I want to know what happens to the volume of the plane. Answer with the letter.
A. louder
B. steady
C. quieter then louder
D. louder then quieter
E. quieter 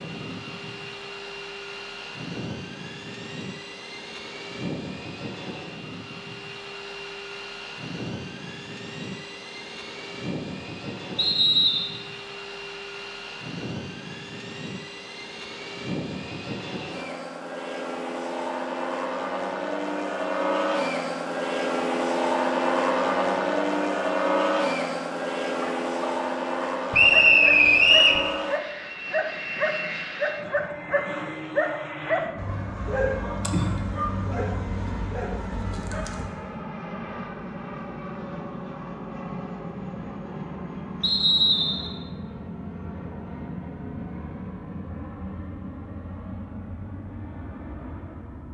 D.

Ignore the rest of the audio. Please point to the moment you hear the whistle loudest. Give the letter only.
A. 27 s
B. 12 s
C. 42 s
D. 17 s
A.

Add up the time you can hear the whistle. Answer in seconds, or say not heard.
3 s.